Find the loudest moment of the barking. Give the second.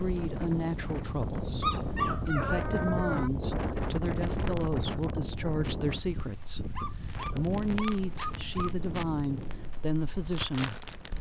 2 s.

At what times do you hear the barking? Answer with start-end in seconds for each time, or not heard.
1.6-3.3, 6.8-8.7.